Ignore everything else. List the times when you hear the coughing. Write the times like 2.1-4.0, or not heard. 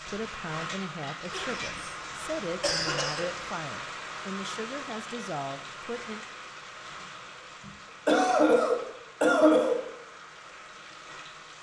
1.2-3.5, 7.7-9.8.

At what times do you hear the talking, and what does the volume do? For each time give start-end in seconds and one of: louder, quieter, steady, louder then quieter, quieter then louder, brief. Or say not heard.
0.1-6.2 steady.